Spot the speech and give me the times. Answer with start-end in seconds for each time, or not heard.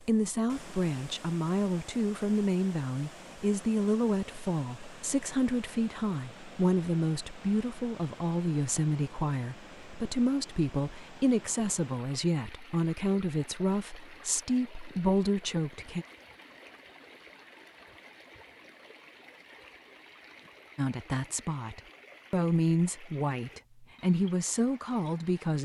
0.0-16.1, 20.8-25.6.